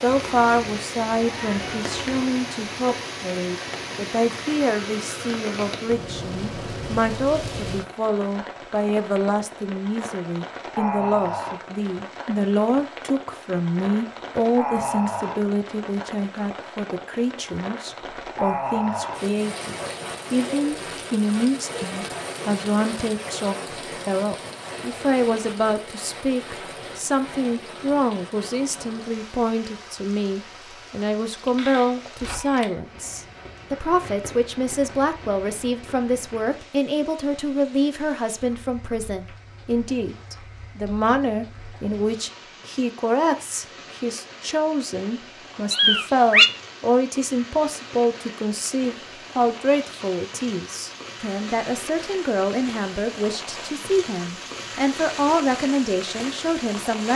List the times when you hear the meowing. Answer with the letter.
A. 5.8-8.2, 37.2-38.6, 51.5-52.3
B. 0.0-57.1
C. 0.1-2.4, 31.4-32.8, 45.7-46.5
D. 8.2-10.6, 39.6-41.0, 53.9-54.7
C.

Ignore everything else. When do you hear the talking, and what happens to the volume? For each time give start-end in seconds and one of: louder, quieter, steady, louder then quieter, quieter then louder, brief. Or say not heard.
0.0-57.1 steady.